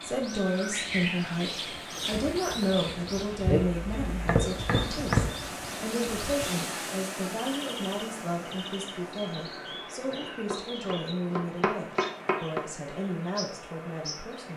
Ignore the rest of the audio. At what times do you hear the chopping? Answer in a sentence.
The chopping can be heard from 3.5 to 5.3 s and from 10.4 to 12.7 s.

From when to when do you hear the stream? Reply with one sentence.
You can hear the stream from 0.0 to 14.5 s.